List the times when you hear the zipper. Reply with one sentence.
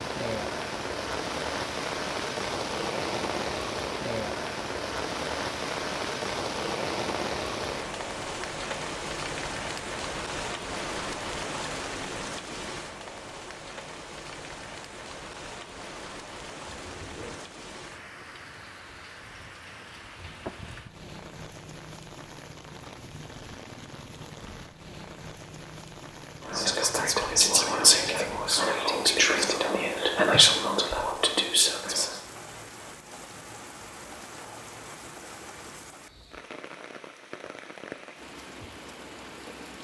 You can hear the zipper from 16.6 to 17.4 s.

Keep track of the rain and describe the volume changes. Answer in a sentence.
The volume of the rain goes down.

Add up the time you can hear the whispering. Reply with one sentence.
The whispering can be heard for 6 seconds in total.